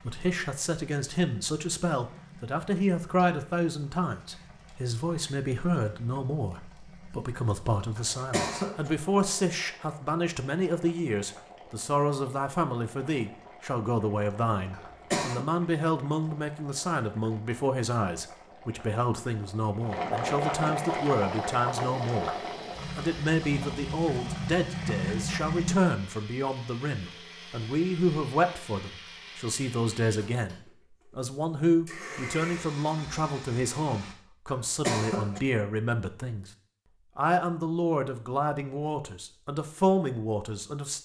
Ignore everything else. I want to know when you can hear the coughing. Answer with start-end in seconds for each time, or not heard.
8.0-8.9, 14.7-15.4, 34.5-35.4.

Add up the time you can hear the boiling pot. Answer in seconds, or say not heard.
26 s.